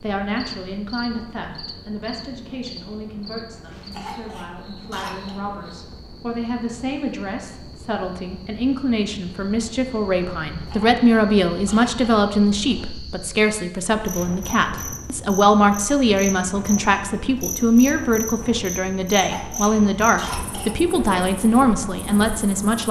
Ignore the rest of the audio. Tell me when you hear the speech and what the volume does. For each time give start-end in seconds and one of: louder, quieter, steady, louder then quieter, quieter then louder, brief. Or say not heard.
0.0-22.8 louder.